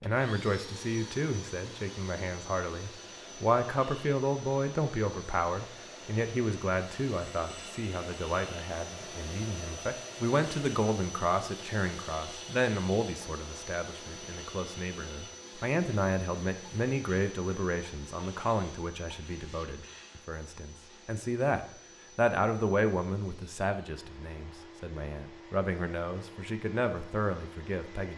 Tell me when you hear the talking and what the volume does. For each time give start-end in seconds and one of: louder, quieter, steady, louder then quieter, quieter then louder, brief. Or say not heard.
0.0-28.1 steady.